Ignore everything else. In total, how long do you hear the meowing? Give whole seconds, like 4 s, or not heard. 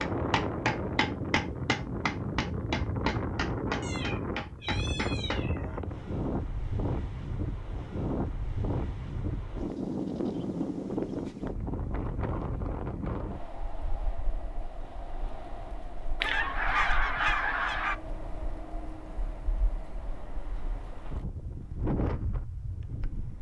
2 s.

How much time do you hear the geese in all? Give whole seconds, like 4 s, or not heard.
2 s.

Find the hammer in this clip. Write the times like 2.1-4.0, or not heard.
0.0-5.5.